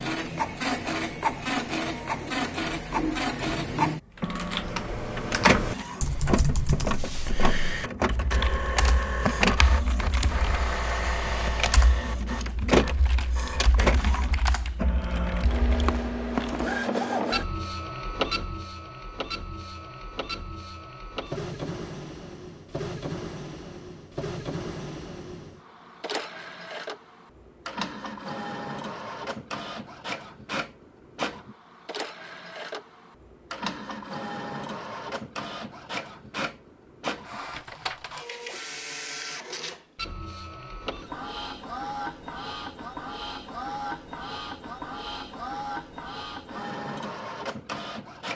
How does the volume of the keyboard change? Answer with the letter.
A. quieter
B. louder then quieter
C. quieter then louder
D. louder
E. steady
A.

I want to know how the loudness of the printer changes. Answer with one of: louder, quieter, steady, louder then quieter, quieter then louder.
quieter.